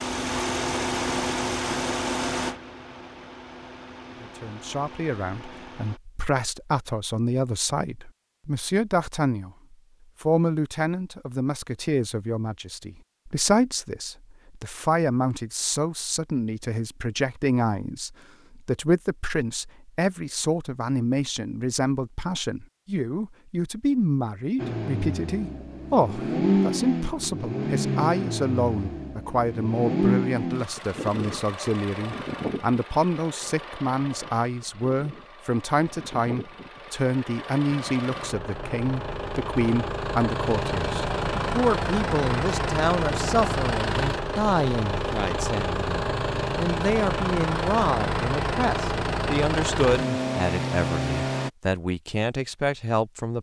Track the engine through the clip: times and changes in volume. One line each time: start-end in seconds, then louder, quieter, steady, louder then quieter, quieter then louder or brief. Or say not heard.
0.0-6.0 quieter
24.6-51.5 quieter then louder.